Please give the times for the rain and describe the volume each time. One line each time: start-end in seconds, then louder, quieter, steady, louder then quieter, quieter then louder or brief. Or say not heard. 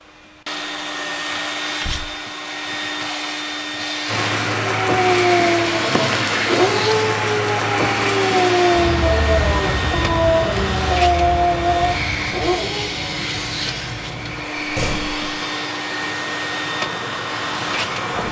4.0-18.2 quieter.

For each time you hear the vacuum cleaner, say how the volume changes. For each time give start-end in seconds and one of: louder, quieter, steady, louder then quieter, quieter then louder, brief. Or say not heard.
0.0-18.2 steady.